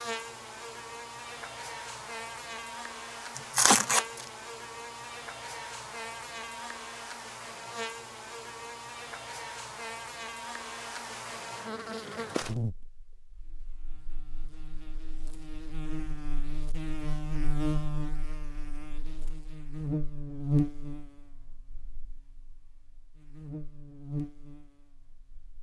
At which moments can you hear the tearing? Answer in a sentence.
The tearing can be heard from 3.4 to 4.2 s.